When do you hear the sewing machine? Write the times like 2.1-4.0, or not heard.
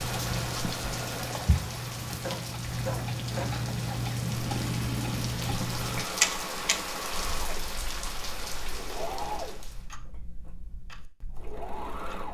0.0-7.7, 8.7-12.2.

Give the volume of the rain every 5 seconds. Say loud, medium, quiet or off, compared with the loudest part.
loud, loud, off.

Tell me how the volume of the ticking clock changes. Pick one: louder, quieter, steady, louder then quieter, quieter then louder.
louder then quieter.